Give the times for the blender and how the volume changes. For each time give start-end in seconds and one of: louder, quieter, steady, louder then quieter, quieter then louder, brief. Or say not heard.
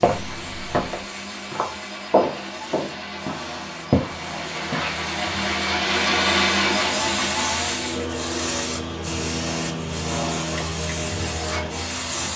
0.0-12.1 louder then quieter.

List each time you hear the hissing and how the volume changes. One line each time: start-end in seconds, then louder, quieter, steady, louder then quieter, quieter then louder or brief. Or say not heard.
0.0-12.3 louder.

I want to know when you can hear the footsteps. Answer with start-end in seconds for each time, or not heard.
0.0-5.0.